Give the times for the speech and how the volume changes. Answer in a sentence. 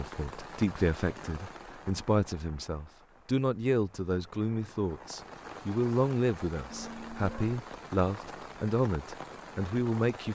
The speech can be heard from 0.0 to 10.3 s, at a steady volume.